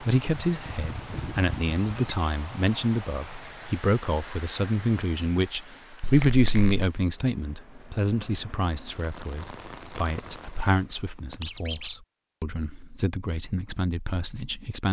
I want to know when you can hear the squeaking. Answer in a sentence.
The squeaking can be heard from 0.7 to 2.3 s, from 6.0 to 6.9 s and from 11.4 to 11.9 s.